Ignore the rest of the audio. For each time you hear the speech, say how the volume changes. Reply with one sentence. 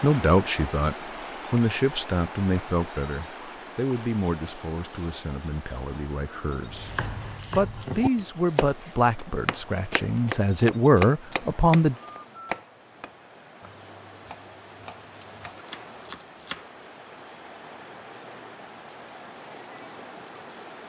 You can hear the speech from 0.0 to 11.9 s, getting quieter then louder.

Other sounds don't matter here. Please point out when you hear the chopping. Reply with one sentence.
The chopping can be heard from 6.7 to 16.6 s.